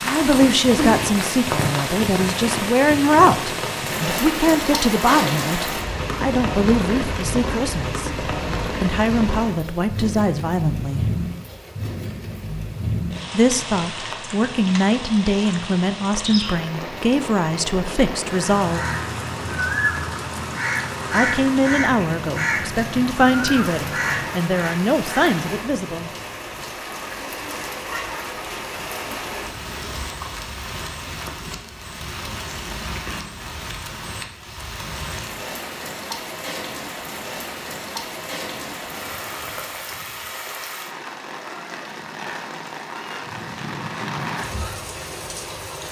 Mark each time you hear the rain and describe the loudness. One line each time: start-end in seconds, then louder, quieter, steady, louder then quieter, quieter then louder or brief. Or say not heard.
0.0-45.8 quieter.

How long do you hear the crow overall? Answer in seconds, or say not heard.
8 s.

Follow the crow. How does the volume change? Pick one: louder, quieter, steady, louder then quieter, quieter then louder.
quieter.